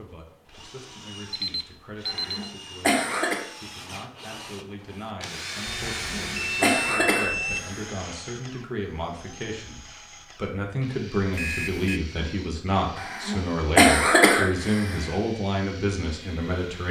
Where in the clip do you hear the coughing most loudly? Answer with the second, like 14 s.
14 s.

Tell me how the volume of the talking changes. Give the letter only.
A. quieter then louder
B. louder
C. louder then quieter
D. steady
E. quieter
B.